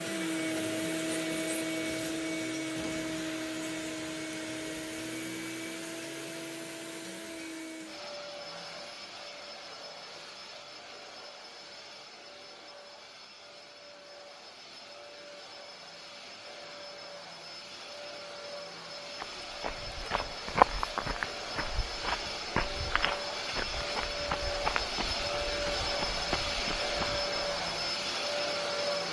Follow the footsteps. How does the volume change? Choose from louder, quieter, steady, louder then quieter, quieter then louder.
quieter.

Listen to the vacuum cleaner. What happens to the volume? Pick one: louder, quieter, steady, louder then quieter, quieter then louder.
quieter then louder.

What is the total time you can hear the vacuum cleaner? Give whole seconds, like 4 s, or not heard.
29 s.